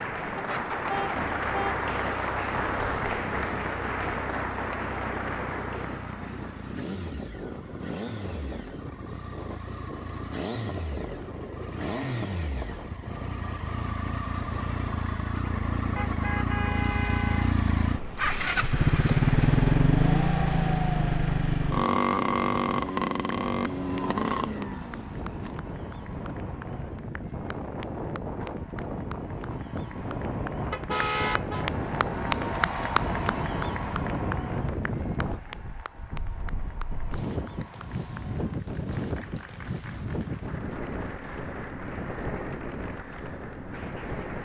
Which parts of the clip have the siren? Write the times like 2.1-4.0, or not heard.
not heard.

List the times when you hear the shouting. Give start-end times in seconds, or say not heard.
not heard.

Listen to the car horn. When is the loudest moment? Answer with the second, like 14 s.
31 s.